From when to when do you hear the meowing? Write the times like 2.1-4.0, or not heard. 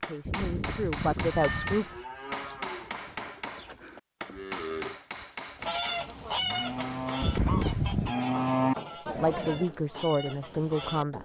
0.2-1.8, 7.2-8.1.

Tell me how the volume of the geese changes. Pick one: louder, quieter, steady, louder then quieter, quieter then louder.
quieter.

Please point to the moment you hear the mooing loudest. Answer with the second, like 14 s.
9 s.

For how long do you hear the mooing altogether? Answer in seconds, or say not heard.
8 s.